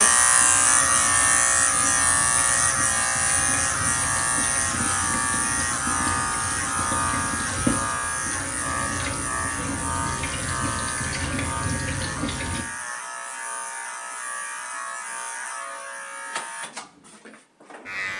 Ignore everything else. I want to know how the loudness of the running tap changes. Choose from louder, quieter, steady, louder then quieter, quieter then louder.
louder.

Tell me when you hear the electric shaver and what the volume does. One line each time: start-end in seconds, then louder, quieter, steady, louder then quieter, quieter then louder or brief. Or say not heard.
0.0-18.1 quieter.